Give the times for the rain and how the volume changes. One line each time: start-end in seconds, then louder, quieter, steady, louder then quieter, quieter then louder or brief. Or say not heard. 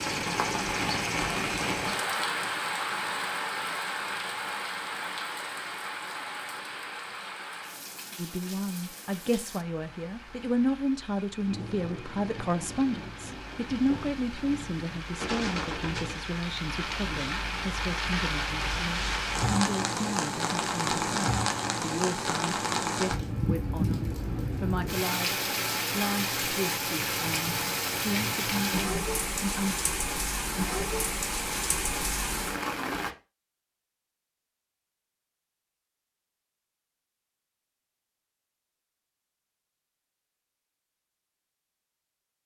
0.0-33.1 quieter then louder.